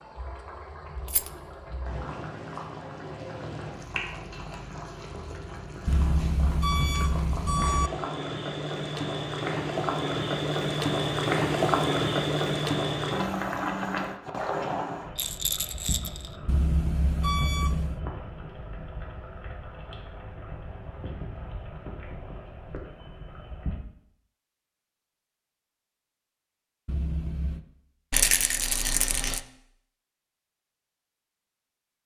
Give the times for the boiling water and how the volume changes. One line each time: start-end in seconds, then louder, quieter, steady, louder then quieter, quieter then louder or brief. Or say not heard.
0.0-23.8 louder then quieter.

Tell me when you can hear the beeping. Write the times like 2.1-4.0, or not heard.
5.8-7.9, 16.4-18.0, 26.9-27.6.